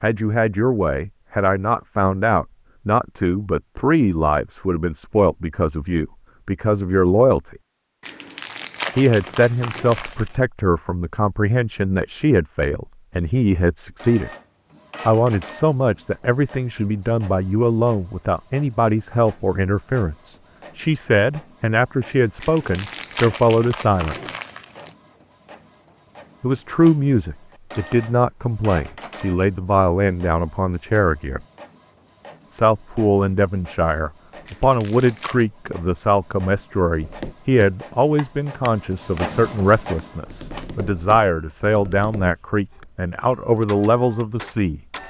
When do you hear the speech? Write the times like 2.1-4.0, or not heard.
0.0-7.5, 8.9-14.3, 15.1-24.4, 26.4-31.4, 32.5-44.8.